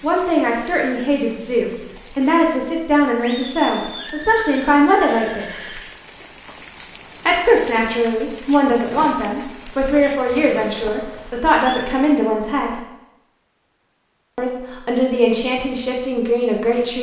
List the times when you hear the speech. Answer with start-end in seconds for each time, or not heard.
0.0-5.8, 7.2-12.8, 14.3-16.9.